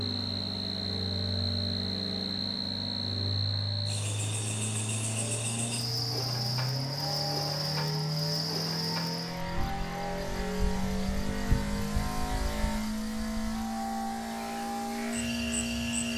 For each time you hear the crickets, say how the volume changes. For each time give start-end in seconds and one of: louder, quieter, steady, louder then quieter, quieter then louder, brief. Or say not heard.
0.0-16.1 quieter.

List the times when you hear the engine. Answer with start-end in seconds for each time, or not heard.
0.0-16.1.